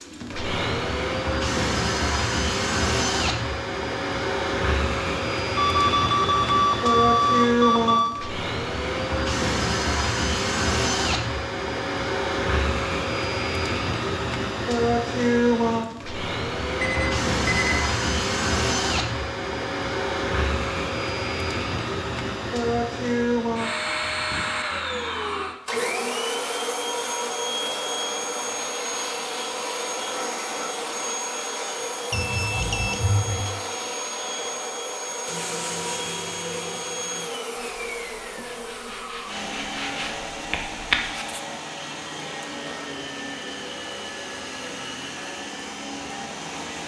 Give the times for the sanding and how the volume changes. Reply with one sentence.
The sanding can be heard from 35.2 to 41.4 s, getting quieter then louder.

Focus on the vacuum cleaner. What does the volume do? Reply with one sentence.
The volume of the vacuum cleaner goes down.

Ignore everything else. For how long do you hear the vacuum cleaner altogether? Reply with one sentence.
You can hear the vacuum cleaner for 47 seconds altogether.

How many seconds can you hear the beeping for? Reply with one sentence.
You can hear the beeping for 5 seconds altogether.